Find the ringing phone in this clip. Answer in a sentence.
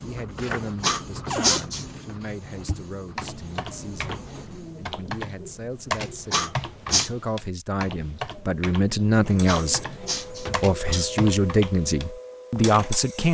You can't hear the ringing phone here.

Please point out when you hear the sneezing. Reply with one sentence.
The sneezing can be heard from 0.8 to 1.9 s, from 6.3 to 7.1 s and from 9.4 to 11.1 s.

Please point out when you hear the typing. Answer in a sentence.
You can hear the typing from 2.5 to 12.8 s.